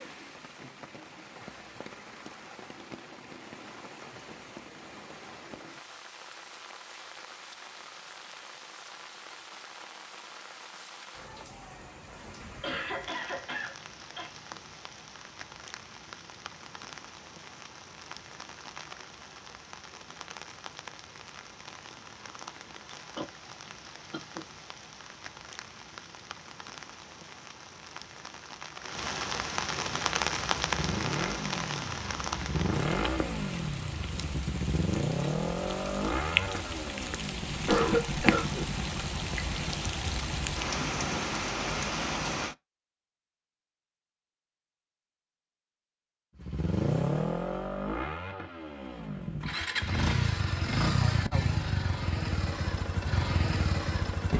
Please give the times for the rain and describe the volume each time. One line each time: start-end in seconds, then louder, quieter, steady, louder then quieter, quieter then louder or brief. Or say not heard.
0.0-42.5 louder.